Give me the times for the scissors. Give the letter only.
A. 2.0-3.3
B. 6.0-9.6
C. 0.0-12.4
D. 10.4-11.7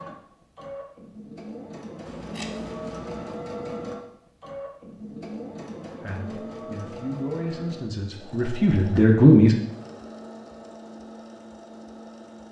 A.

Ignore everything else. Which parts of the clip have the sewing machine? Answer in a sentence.
You can hear the sewing machine from 0.0 to 12.4 s.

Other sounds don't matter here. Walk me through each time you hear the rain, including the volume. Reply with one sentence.
You can't hear the rain here.